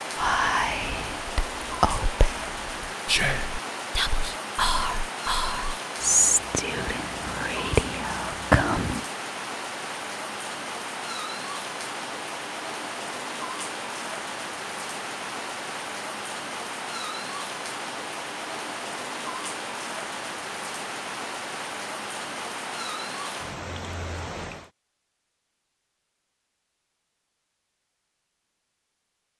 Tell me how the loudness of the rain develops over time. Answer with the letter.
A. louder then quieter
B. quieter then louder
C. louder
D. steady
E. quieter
D.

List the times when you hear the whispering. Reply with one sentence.
You can hear the whispering from 0.1 to 9.1 s.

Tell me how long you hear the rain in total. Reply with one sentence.
You can hear the rain for 25 seconds altogether.